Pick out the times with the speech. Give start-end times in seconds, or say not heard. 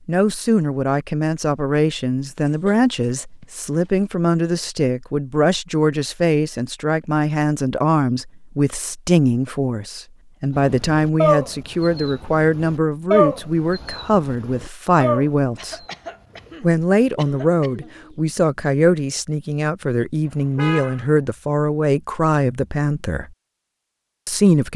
0.1-15.8, 16.6-23.3, 24.2-24.7.